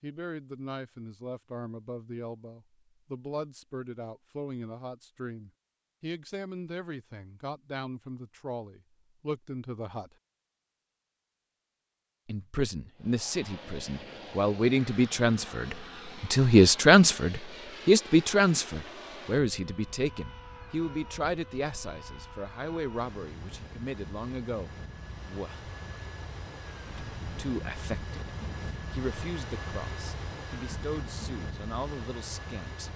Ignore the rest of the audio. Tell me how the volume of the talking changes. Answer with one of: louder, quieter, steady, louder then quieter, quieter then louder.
louder then quieter.